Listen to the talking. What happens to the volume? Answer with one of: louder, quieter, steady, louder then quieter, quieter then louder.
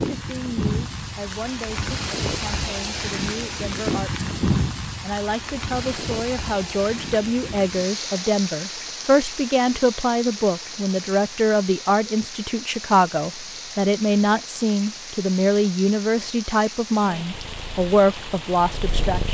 louder.